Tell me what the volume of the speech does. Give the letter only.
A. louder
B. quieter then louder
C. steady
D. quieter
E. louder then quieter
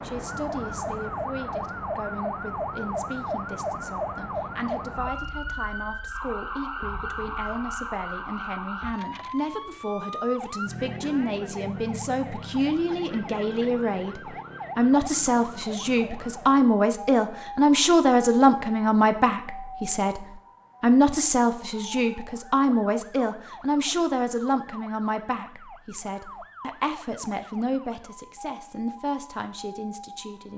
E.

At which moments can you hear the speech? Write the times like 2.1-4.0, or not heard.
0.0-30.5.